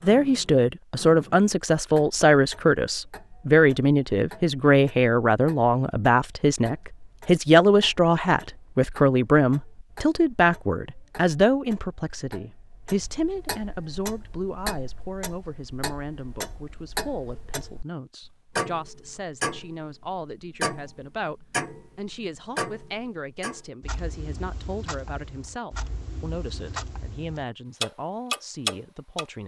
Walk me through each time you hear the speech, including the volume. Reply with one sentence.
The speech can be heard from 0.0 to 29.4 s, getting quieter.